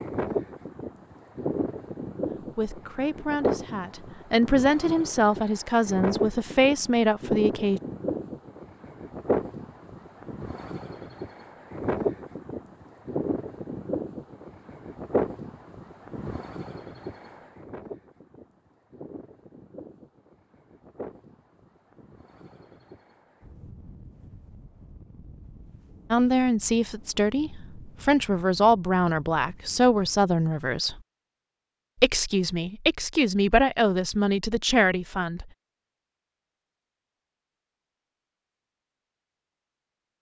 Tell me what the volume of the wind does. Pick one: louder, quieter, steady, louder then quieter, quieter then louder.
quieter.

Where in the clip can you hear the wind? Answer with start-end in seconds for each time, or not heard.
0.0-30.4.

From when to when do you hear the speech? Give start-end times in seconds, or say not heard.
2.4-7.8, 26.1-31.0, 32.0-35.5.